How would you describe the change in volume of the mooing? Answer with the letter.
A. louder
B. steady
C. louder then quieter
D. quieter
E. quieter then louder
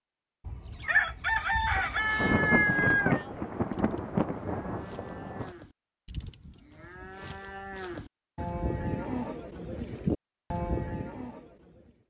A.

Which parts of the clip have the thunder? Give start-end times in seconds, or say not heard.
1.8-5.5.